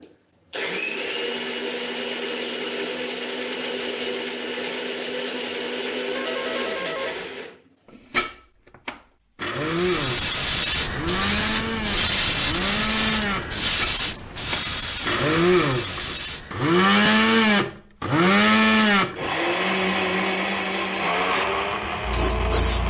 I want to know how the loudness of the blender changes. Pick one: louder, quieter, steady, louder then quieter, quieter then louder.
louder.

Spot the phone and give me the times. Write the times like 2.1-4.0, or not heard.
6.2-7.2.